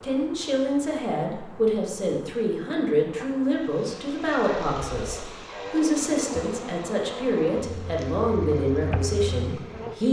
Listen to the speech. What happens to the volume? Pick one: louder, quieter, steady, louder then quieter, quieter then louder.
steady.